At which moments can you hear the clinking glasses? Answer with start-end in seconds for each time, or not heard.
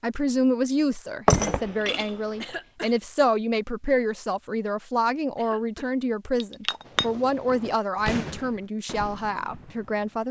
1.2-2.5, 6.4-7.0.